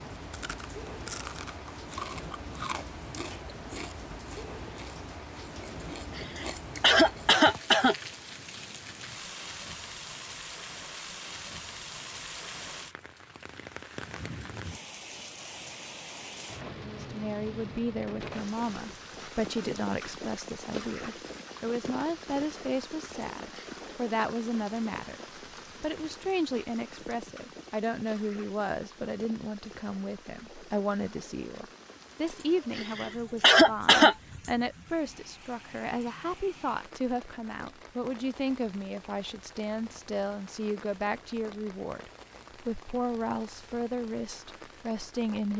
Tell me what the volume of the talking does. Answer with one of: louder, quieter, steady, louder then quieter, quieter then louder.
steady.